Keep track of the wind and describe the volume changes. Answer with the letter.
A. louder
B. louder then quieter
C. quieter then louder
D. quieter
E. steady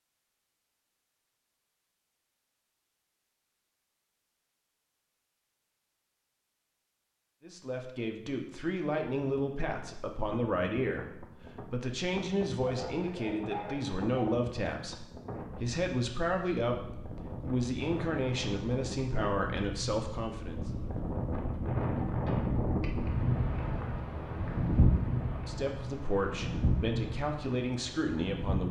A.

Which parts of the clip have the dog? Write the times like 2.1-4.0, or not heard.
12.7-14.3.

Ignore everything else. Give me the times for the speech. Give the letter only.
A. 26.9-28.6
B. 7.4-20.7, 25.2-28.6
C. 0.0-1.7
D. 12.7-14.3
B.